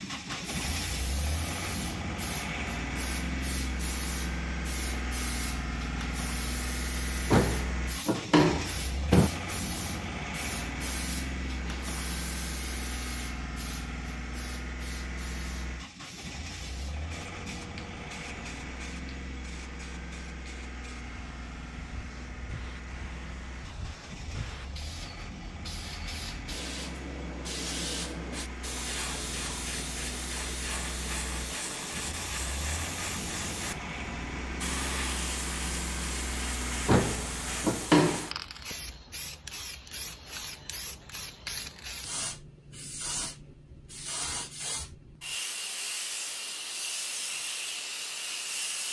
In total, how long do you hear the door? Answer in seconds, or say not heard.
4 s.